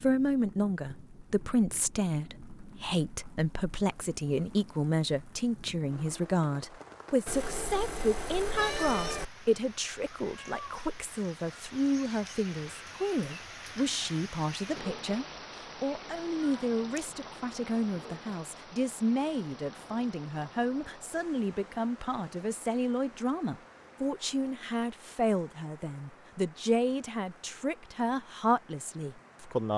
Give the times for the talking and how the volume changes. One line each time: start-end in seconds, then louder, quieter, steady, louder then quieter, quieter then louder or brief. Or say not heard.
0.0-29.7 steady.